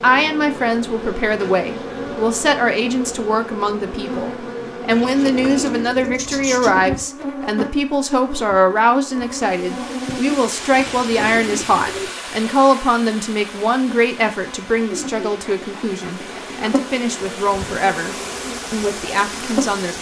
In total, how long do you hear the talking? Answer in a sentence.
The talking can be heard for 20 seconds in total.